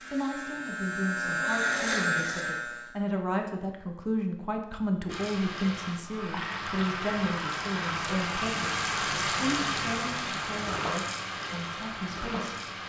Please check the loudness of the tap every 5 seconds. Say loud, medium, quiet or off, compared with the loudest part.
off, loud, loud.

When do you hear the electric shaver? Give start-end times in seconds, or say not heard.
0.0-3.0.